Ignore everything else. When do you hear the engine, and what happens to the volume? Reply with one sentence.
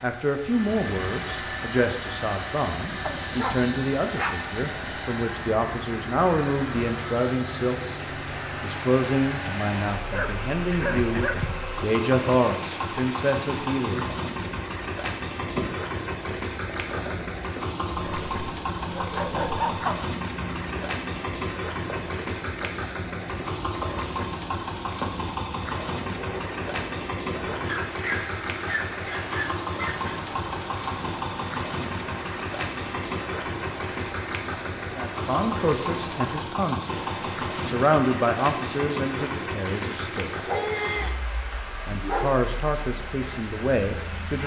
You can hear the engine from 0.0 to 44.4 s, at a steady volume.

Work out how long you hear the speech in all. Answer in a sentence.
The speech can be heard for 21 seconds in total.